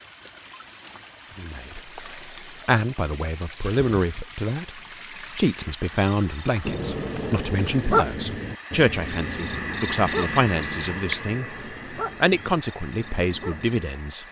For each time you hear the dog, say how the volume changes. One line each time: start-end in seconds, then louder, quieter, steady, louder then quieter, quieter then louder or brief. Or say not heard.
6.7-13.8 quieter.